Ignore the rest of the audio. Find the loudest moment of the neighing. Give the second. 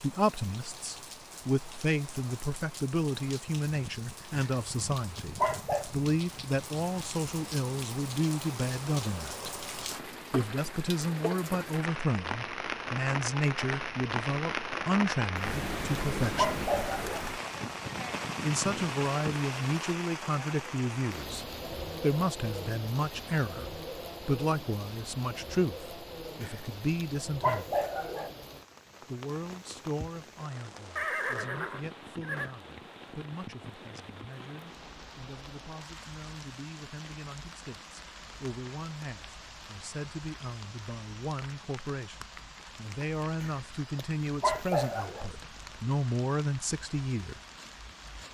31 s.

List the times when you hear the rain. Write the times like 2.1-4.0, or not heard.
0.0-48.2.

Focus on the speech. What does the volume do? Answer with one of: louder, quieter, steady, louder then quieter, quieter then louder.
quieter then louder.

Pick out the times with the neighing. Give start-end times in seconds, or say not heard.
30.9-32.5.